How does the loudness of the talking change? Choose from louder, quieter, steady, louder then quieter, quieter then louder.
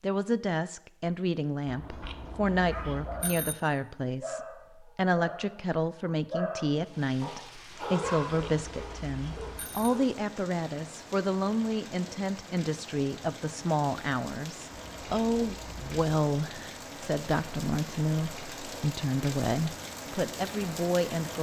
steady.